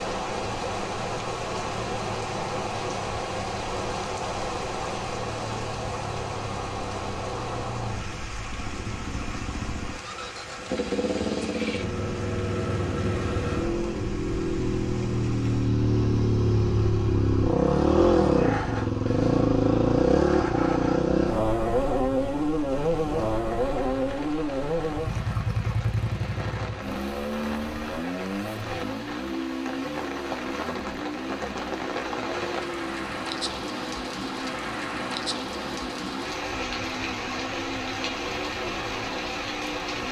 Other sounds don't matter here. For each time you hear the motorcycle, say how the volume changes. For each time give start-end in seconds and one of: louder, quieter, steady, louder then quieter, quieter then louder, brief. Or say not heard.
0.1-40.0 louder then quieter.